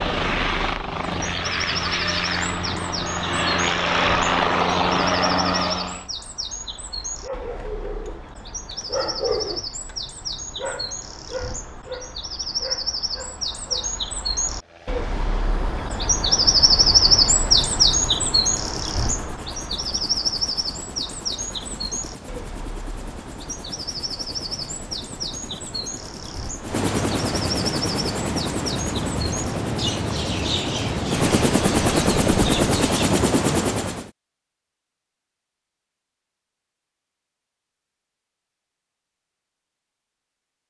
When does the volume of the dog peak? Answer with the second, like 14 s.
9 s.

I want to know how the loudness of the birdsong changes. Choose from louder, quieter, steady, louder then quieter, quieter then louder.
louder then quieter.